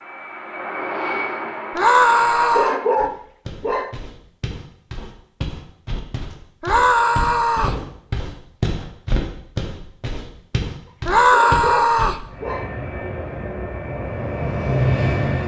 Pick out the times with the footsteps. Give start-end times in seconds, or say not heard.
3.0-12.3.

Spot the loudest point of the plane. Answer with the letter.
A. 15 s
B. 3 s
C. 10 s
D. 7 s
A.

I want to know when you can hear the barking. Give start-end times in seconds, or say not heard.
2.5-4.0, 11.3-12.7.